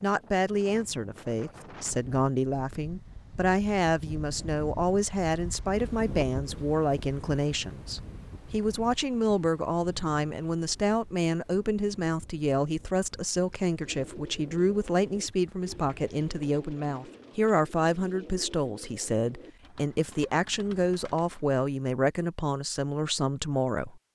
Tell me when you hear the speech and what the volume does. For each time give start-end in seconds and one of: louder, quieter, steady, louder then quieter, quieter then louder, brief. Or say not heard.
0.0-24.0 steady.